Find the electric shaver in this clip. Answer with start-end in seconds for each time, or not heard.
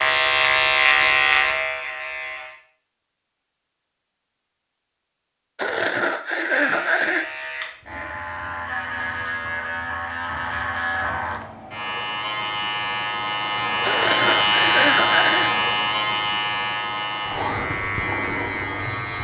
0.0-2.6, 6.6-19.1.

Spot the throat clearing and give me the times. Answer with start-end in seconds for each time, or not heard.
5.5-7.2, 13.8-15.6.